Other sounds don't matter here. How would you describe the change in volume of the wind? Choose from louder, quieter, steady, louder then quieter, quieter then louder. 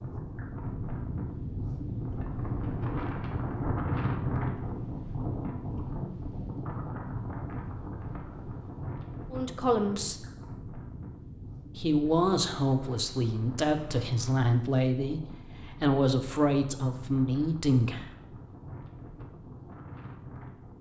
quieter.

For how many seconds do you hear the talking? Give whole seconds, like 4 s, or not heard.
7 s.